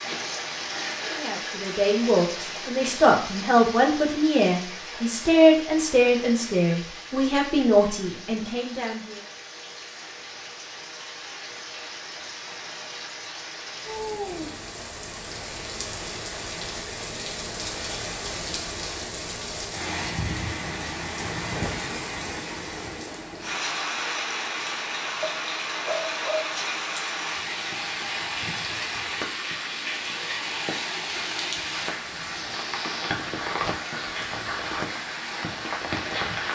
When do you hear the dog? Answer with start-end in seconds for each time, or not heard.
25.2-26.6.